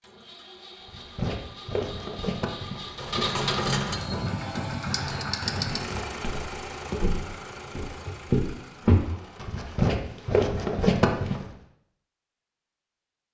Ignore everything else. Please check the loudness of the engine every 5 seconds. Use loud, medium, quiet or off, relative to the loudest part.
loud, loud, off.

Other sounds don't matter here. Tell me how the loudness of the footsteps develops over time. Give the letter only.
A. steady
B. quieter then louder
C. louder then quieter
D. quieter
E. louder
B.